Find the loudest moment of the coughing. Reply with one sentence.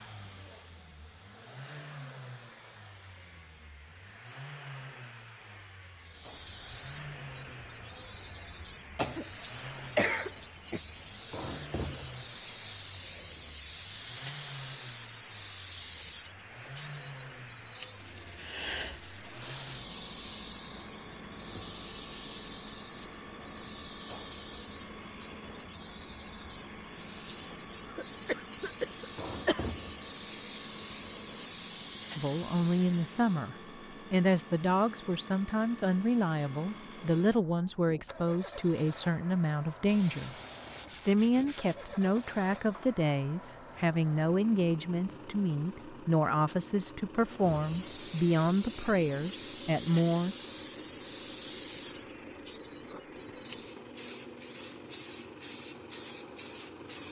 The loudest moment of the coughing is at 10 seconds.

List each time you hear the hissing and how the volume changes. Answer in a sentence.
The hissing can be heard from 6.0 to 33.5 s, at a steady volume; and from 47.2 to 57.0 s, at a steady volume.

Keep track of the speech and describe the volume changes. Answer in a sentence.
The loudness of the speech stays about the same.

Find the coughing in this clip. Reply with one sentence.
You can hear the coughing from 8.9 to 10.8 s, from 27.9 to 29.8 s and from 42.1 to 43.0 s.